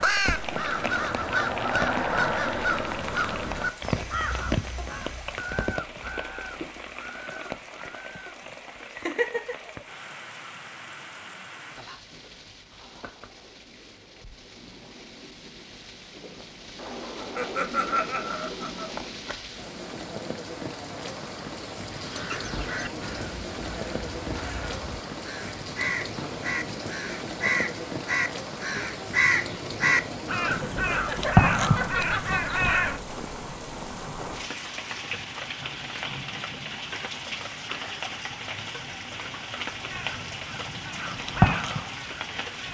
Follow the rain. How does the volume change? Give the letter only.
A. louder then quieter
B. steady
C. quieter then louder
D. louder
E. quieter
C.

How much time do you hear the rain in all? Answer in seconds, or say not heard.
43 s.